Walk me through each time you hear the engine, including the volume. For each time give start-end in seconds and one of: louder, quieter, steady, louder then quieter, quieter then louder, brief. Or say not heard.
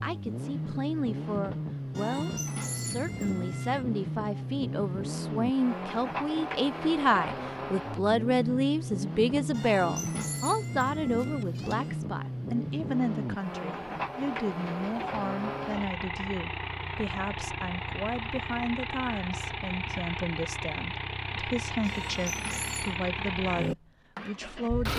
0.0-24.9 steady.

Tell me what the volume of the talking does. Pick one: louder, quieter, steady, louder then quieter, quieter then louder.
louder then quieter.